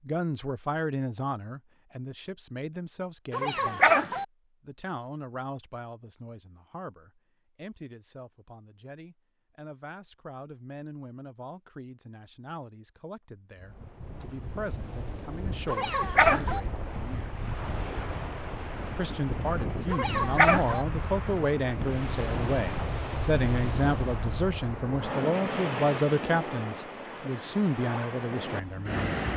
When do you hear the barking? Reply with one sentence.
You can hear the barking from 3.3 to 4.2 s, from 15.7 to 16.6 s and from 19.9 to 20.9 s.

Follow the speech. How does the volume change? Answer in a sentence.
The volume of the speech goes down, then up.